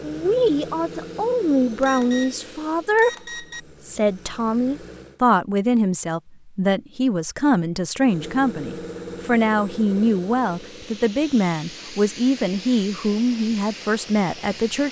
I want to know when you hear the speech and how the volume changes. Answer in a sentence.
You can hear the speech from 0.0 to 14.8 s, at a steady volume.